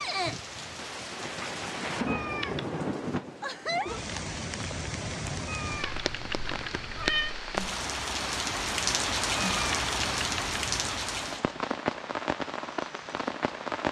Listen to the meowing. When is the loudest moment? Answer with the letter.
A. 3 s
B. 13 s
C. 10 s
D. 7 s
D.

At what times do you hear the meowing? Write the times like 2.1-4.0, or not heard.
2.0-2.7, 5.5-7.3, 9.3-10.9.